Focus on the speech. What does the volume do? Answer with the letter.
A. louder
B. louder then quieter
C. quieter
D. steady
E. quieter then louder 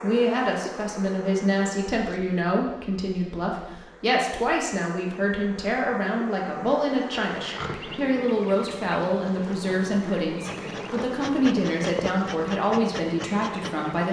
D.